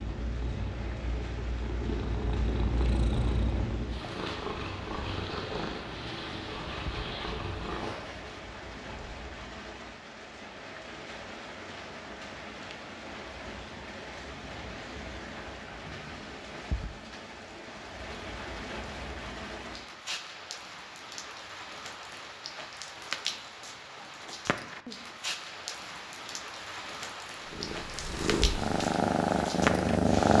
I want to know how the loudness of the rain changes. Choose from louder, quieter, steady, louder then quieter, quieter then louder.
louder.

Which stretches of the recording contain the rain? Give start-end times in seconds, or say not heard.
0.0-30.3.